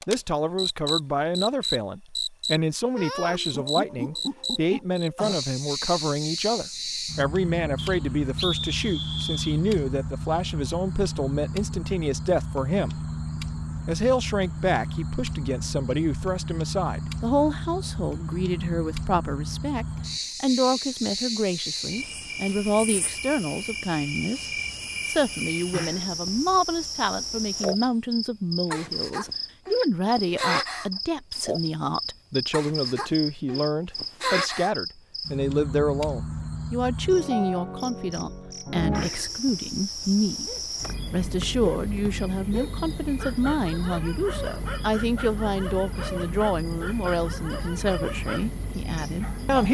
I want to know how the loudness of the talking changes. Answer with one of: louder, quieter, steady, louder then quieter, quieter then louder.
steady.